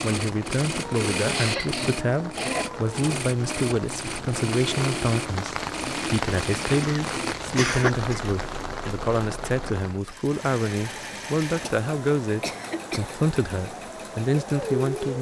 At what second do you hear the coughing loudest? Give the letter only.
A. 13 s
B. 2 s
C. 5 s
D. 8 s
D.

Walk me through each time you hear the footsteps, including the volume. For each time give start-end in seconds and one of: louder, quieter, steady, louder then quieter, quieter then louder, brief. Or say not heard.
not heard.